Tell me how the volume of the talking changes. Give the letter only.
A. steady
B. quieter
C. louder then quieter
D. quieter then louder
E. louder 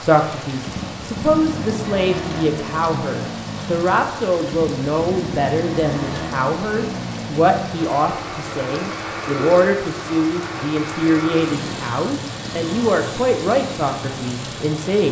A.